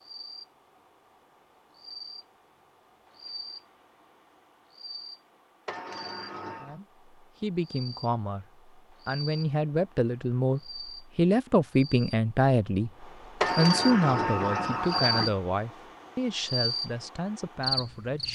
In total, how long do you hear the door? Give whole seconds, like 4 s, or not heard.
3 s.